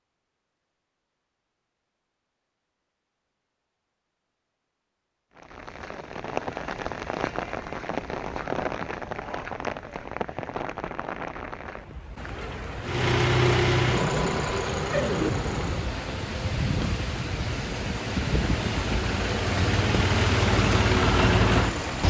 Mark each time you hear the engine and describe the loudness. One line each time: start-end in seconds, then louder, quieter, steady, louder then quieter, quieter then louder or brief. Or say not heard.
12.8-22.0 quieter then louder.